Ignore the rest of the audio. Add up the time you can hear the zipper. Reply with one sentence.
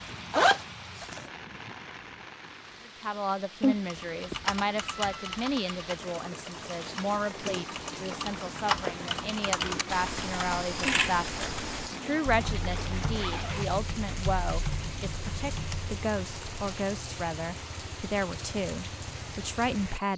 The zipper can be heard for 2 seconds in total.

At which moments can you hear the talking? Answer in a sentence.
The talking can be heard from 3.0 to 20.1 s.